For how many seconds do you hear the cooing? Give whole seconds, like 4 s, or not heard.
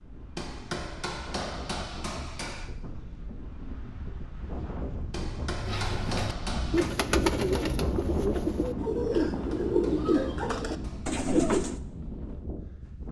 6 s.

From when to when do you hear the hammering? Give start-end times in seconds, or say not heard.
0.3-2.7, 5.1-6.9, 9.3-11.2.